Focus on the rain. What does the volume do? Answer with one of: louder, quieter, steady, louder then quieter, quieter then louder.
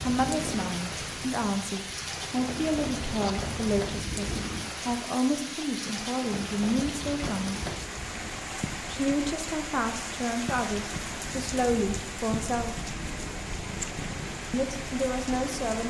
steady.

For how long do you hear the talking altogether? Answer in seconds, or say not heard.
13 s.